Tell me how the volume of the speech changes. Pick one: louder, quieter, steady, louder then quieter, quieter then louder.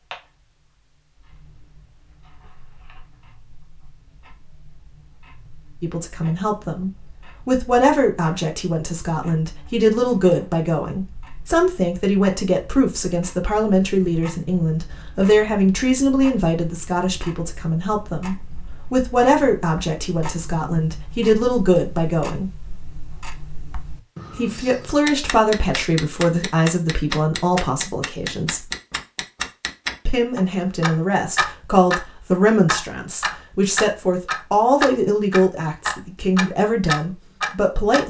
steady.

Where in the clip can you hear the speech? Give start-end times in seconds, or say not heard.
5.8-22.5, 24.4-28.6, 30.1-38.0.